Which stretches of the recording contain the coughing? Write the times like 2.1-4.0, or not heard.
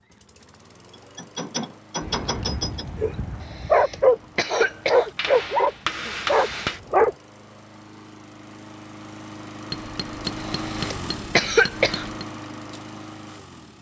3.4-5.1, 10.4-12.1.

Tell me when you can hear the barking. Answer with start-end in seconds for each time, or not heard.
2.0-7.2.